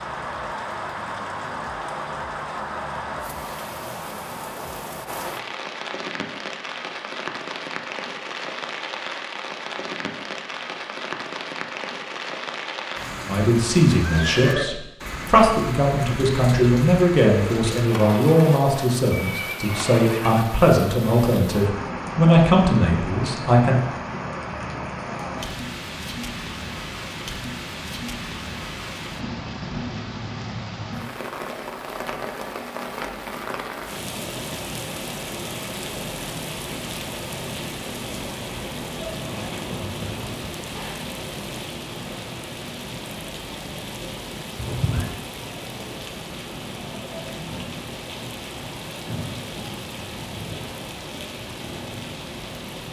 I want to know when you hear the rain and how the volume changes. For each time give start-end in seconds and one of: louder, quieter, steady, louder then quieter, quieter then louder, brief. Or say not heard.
0.0-52.8 steady.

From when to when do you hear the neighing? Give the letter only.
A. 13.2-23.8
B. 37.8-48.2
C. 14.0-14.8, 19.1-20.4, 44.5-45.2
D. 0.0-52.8
C.